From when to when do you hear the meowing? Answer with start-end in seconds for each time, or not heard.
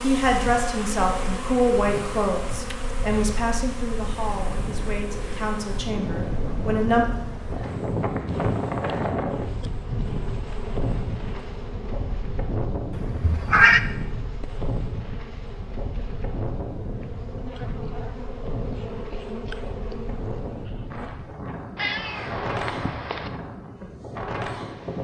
1.2-3.0, 12.9-13.8, 21.8-23.3.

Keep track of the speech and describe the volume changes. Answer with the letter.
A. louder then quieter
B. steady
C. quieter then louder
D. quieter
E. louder
D.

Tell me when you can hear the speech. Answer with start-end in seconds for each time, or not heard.
0.0-7.1.